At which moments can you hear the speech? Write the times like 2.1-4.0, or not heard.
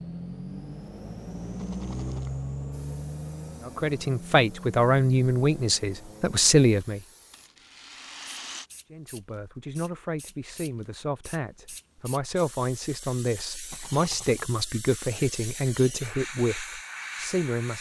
3.6-7.0, 8.9-17.7.